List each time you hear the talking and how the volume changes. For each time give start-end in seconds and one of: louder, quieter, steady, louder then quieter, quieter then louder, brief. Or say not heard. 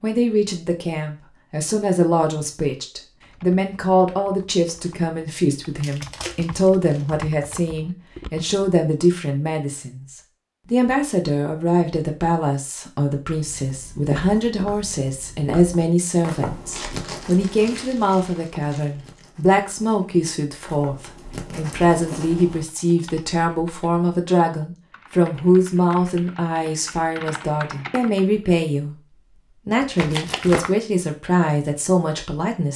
0.0-32.7 steady.